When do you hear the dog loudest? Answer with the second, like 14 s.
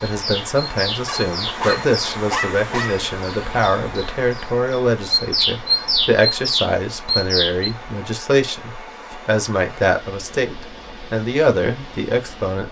2 s.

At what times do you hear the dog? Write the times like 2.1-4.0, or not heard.
1.1-3.1.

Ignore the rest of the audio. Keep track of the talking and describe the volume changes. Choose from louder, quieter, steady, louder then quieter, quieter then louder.
steady.